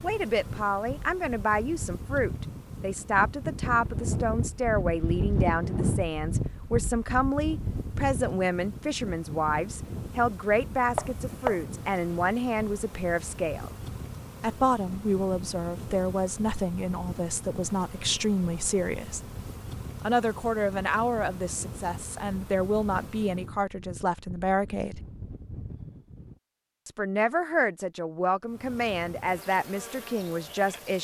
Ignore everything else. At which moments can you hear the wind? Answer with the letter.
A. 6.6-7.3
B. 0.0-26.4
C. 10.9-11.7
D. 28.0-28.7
B.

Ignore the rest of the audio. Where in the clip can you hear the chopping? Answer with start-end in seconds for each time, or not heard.
10.9-11.7.